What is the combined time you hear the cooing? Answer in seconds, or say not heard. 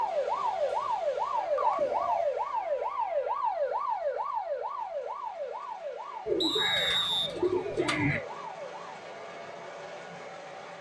4 s.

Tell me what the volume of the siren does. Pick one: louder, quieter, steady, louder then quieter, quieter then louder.
quieter.